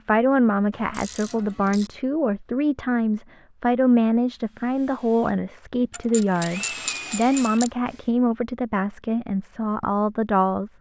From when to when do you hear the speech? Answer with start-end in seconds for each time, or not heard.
0.1-10.7.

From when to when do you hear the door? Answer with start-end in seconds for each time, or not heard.
not heard.